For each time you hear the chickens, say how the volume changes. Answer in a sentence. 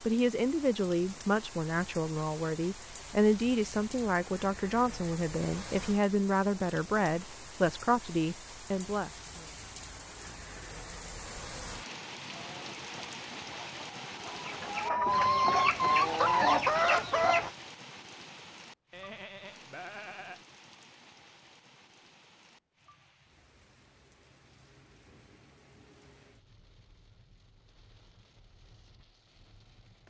You can hear the chickens from 12.3 to 17.5 s, getting louder.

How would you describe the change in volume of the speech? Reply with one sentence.
The loudness of the speech stays about the same.